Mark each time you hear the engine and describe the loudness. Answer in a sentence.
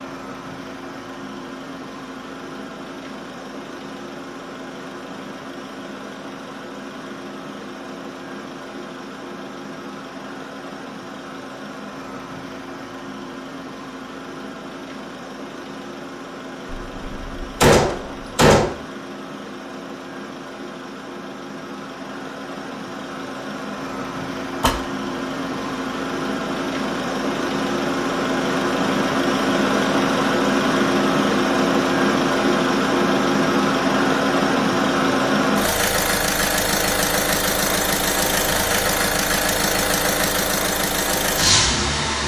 The engine can be heard from 0.0 to 42.2 s, getting louder.